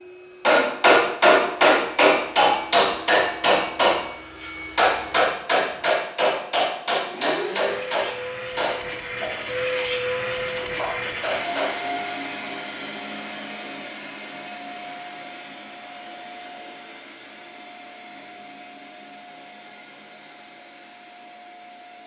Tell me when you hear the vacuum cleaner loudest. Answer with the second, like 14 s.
10 s.